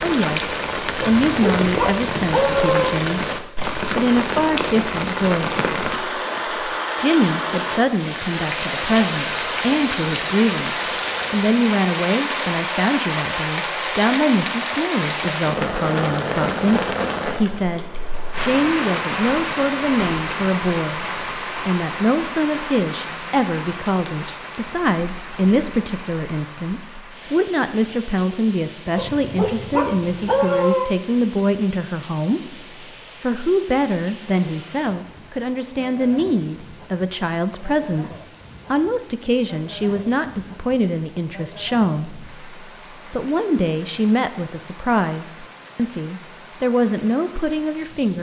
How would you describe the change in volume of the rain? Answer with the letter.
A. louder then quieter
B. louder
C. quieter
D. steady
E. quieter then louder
C.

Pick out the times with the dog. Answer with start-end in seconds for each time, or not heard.
1.0-2.9, 28.9-30.9.